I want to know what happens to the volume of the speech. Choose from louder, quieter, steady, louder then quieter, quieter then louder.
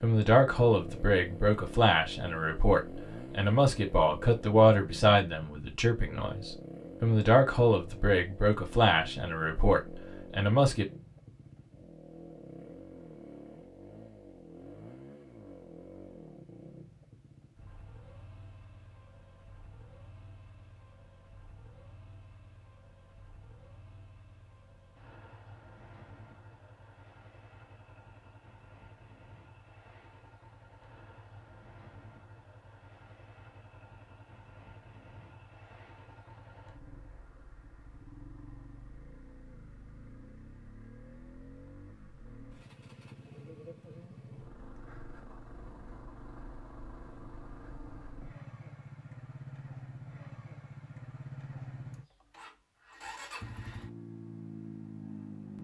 steady.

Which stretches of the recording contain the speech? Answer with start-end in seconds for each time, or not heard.
0.0-10.8.